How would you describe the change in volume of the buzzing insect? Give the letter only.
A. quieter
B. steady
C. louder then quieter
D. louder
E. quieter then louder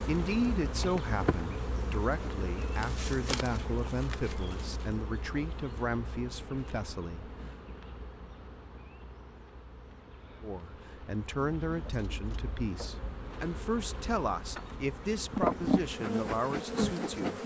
E.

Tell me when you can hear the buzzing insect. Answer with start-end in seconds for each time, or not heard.
0.0-17.4.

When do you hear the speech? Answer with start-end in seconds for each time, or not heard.
0.1-7.3, 10.4-17.4.